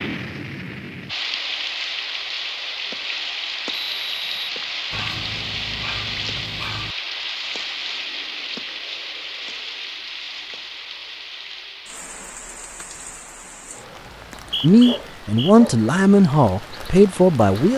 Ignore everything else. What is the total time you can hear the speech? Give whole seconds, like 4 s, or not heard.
3 s.